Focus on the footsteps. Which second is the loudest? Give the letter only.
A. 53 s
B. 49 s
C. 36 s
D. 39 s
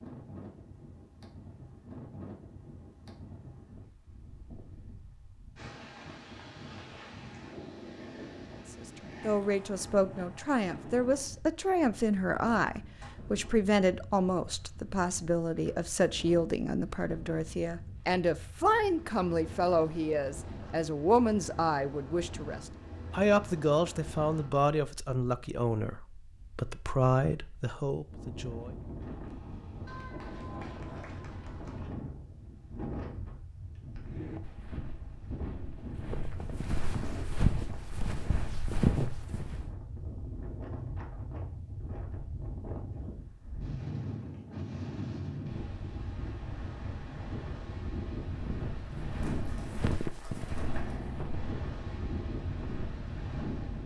D.